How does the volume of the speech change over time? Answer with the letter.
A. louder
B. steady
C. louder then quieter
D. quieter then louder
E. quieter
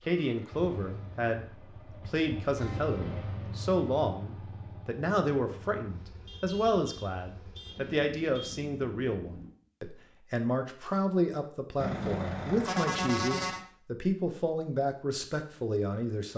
B.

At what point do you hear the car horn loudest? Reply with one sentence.
The volume of the car horn peaks at 13 seconds.